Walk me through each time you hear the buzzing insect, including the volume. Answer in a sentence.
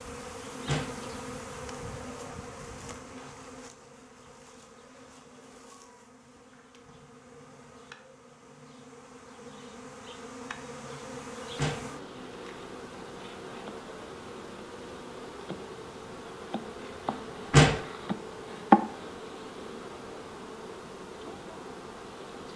The buzzing insect can be heard from 0.0 to 22.5 s, getting quieter then louder.